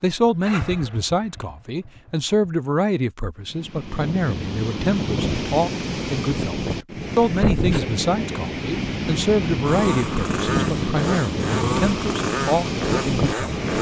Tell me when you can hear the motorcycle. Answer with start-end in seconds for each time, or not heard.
0.1-2.5, 9.4-13.7.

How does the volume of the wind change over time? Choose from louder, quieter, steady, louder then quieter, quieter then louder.
steady.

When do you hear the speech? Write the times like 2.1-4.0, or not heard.
0.0-13.7.